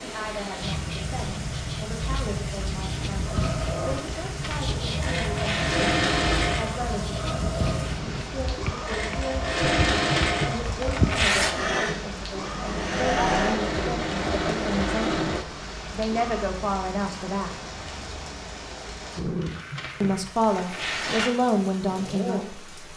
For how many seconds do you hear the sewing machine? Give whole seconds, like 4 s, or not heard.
12 s.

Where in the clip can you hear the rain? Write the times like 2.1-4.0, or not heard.
0.0-22.9.